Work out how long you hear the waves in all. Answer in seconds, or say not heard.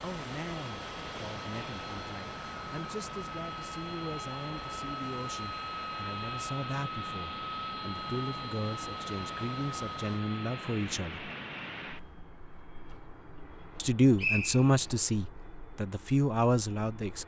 10 s.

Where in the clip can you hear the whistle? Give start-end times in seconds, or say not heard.
13.8-14.9.